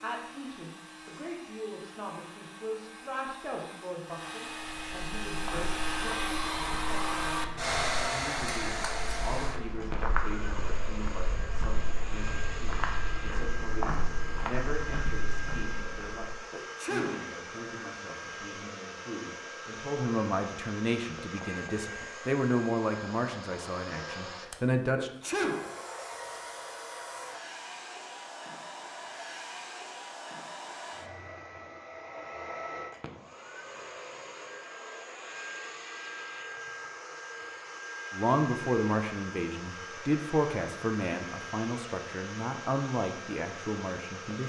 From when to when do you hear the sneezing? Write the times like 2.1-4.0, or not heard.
16.5-17.3, 24.9-25.8.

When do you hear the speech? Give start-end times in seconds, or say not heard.
0.0-25.1, 38.1-44.4.